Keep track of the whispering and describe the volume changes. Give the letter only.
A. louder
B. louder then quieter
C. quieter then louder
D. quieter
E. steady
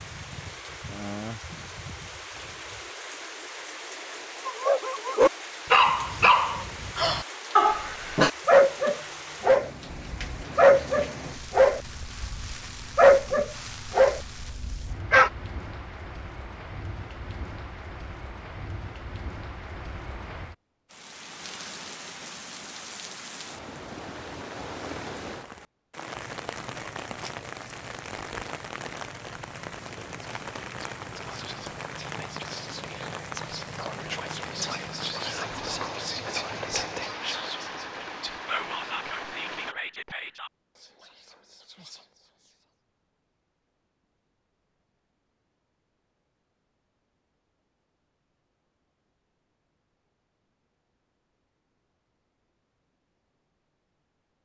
B.